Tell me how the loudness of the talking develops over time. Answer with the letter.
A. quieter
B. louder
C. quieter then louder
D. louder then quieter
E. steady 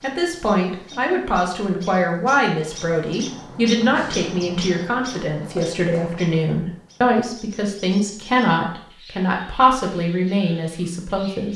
E.